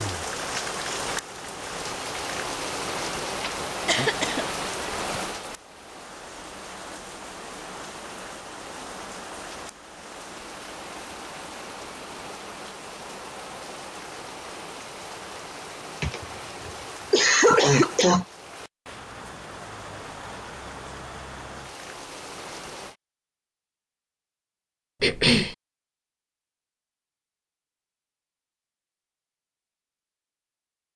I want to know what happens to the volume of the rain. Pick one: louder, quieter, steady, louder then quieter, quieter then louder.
quieter.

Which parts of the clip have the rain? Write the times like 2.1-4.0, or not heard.
0.0-22.9.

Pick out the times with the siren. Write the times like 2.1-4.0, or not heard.
not heard.